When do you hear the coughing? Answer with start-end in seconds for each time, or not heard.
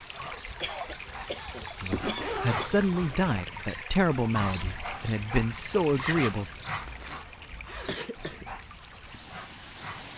0.6-2.7, 6.8-8.4.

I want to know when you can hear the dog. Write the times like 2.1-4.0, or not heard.
0.0-10.1.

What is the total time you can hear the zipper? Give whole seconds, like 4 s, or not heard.
4 s.